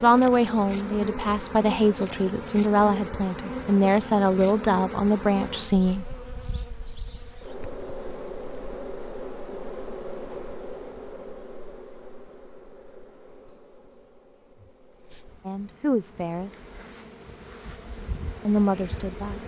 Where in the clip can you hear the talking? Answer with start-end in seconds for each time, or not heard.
0.0-6.0, 15.4-16.6, 18.4-19.4.